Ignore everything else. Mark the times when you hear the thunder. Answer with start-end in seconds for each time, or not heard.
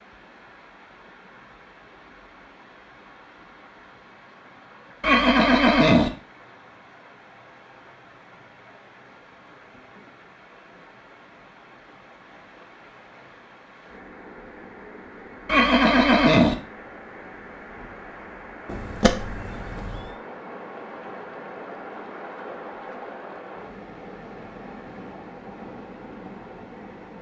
not heard.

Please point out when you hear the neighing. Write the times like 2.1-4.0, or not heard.
5.0-6.1, 15.4-16.6, 18.6-20.1.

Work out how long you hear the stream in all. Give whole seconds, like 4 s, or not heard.
27 s.